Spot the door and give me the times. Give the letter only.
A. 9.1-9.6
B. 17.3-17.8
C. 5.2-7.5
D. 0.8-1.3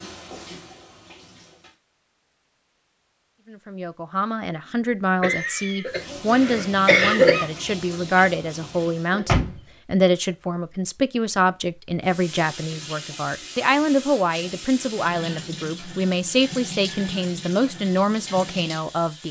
A.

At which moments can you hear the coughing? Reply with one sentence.
The coughing can be heard from 5.2 to 7.5 s.